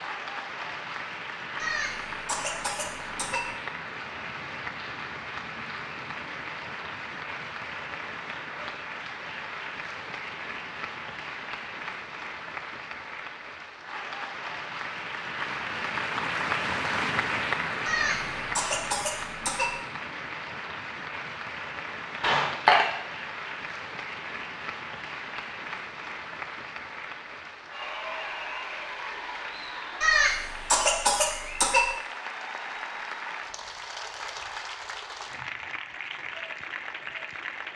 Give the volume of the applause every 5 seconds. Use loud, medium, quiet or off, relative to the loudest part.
medium, medium, medium, loud, medium, medium, medium, medium.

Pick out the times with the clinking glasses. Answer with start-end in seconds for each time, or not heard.
22.2-22.9.